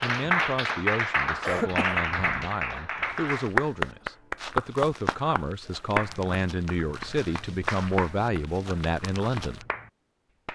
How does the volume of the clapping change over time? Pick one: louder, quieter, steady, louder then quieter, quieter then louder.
quieter.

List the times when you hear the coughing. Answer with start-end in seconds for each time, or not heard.
1.4-2.5.